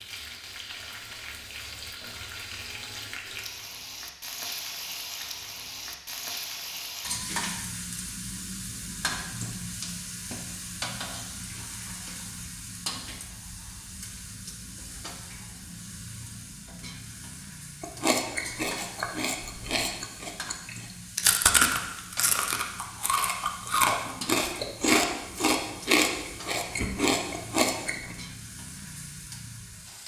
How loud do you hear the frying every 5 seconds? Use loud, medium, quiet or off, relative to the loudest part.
loud, loud, loud, medium, medium, medium.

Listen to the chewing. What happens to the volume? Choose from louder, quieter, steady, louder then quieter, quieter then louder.
louder.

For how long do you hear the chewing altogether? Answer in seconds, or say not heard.
10 s.